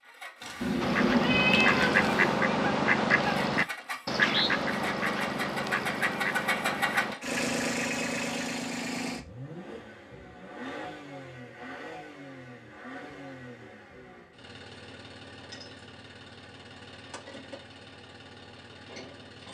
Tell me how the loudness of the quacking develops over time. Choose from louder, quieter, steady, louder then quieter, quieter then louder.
quieter.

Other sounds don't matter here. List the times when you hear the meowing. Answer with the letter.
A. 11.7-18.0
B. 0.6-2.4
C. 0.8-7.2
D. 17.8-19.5
B.